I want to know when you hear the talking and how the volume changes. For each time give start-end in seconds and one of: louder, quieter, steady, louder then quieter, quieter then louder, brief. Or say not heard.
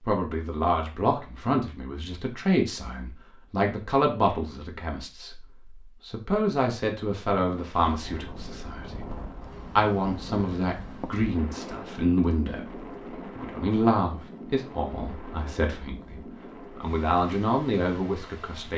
0.0-18.7 steady.